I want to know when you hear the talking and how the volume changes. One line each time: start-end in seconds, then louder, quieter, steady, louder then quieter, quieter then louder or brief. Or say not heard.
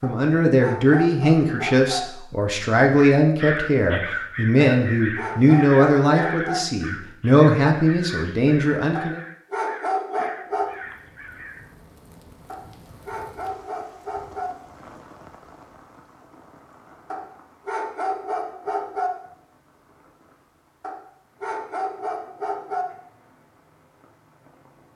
0.0-9.2 steady.